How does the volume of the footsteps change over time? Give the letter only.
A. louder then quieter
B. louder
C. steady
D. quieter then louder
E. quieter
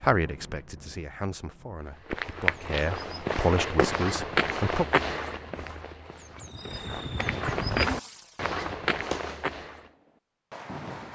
D.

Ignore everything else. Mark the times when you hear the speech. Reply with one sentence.
You can hear the speech from 0.0 to 4.8 s.